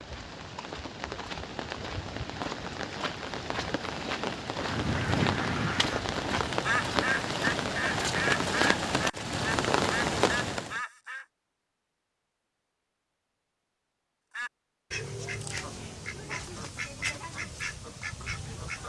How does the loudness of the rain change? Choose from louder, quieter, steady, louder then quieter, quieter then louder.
louder.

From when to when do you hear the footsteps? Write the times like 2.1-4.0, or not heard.
not heard.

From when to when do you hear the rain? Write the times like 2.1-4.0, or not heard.
0.0-10.8.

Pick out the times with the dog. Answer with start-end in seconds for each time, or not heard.
not heard.